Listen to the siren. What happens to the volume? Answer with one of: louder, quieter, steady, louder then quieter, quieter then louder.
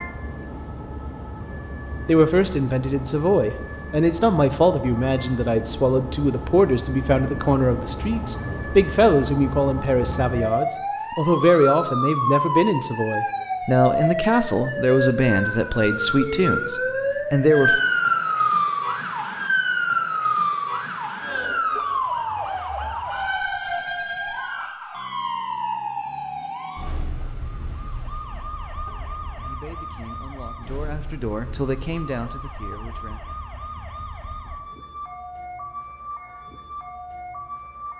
louder then quieter.